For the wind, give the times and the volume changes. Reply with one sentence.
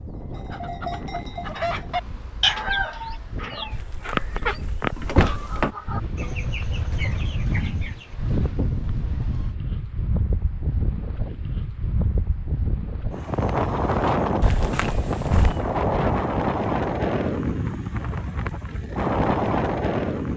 You can hear the wind from 0.0 to 20.3 s, getting louder.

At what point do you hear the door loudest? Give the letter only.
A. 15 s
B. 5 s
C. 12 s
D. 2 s
B.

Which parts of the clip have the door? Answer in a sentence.
You can hear the door from 3.7 to 5.8 s and from 14.4 to 15.7 s.